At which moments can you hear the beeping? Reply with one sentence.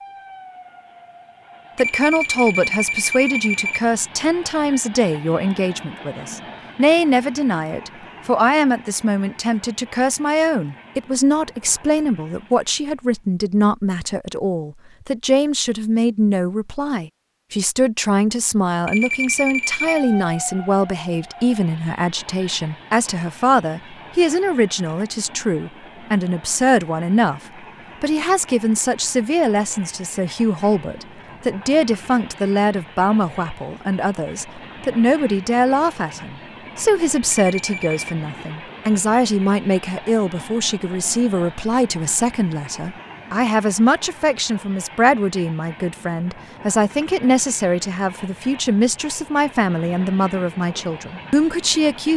The beeping can be heard from 1.8 to 3.8 s, from 18.9 to 20.1 s and from 37.4 to 38.1 s.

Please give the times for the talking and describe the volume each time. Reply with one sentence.
You can hear the talking from 1.8 to 27.4 s, at a steady volume; and from 28.0 to 52.1 s, at a steady volume.